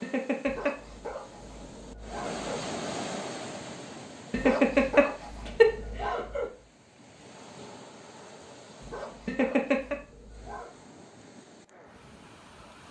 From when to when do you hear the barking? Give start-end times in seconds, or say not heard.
0.5-2.7, 4.3-6.6, 8.8-10.8.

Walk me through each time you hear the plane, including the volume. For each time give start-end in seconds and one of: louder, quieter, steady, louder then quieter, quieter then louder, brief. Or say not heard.
not heard.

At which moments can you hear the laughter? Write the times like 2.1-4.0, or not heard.
0.0-0.8, 4.3-5.8, 9.2-9.9.